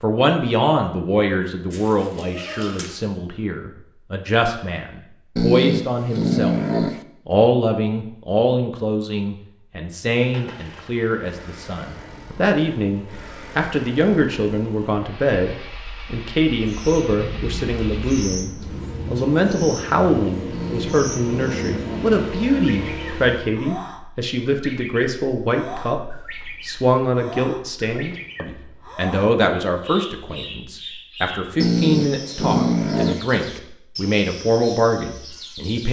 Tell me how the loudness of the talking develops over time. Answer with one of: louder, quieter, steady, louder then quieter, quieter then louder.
steady.